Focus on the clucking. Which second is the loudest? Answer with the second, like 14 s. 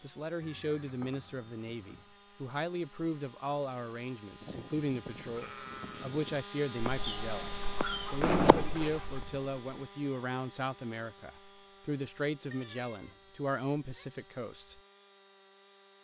8 s.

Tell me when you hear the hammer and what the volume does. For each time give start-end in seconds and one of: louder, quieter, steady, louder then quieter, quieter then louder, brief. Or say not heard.
not heard.